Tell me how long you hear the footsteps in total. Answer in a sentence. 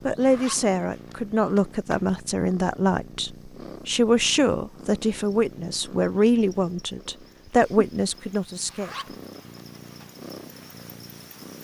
You can't hear the footsteps here.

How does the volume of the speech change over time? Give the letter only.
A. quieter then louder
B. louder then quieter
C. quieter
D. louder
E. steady
E.